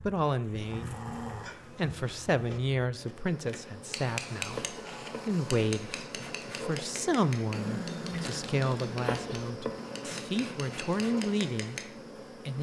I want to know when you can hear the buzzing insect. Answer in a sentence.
The buzzing insect can be heard from 0.0 to 12.5 s.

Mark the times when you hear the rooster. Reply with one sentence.
You can't hear the rooster here.